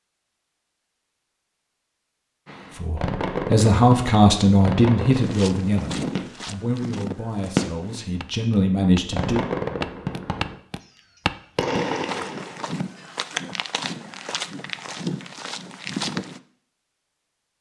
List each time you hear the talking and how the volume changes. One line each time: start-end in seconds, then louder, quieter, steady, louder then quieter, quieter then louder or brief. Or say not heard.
2.8-9.4 quieter then louder.